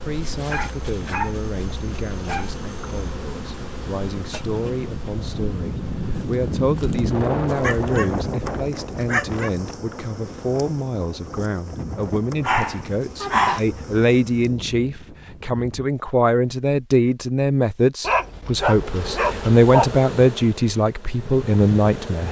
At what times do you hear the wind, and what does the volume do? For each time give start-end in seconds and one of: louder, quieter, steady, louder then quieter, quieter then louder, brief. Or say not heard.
0.0-15.9 louder then quieter.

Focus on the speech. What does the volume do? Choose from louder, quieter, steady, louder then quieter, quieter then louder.
louder.